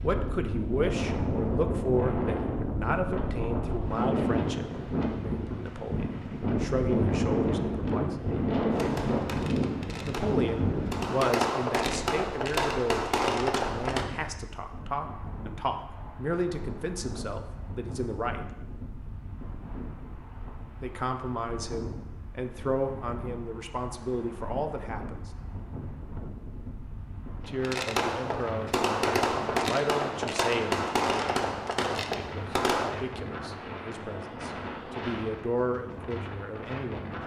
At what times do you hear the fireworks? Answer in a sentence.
You can hear the fireworks from 8.7 to 14.1 s and from 27.6 to 33.0 s.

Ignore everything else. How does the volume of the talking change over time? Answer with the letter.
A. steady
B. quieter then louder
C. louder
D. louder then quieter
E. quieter
A.